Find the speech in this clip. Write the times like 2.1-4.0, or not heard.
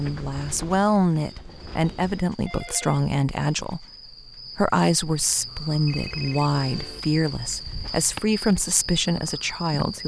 0.0-3.9, 4.5-10.0.